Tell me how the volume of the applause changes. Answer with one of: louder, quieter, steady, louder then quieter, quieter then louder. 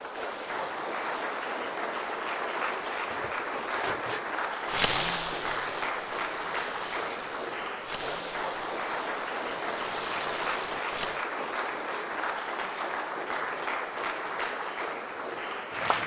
steady.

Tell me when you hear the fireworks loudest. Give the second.
5 s.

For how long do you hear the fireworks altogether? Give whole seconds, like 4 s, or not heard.
8 s.